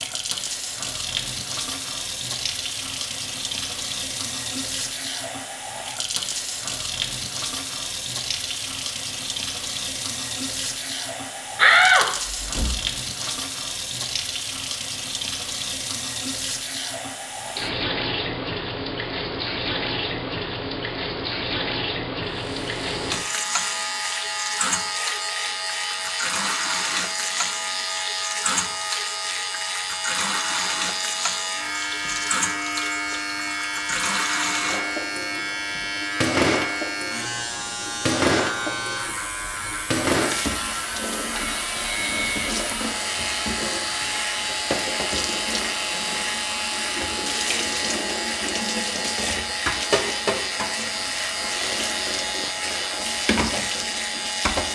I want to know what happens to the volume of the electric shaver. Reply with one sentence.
The volume of the electric shaver stays about the same.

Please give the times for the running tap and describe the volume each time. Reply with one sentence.
The running tap can be heard from 0.0 to 54.7 s, at a steady volume.